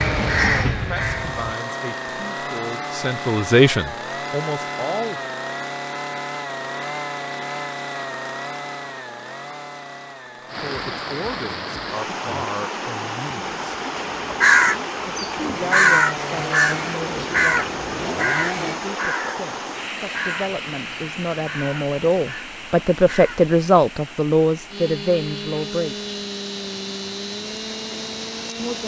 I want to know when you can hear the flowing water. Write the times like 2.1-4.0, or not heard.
10.4-28.8.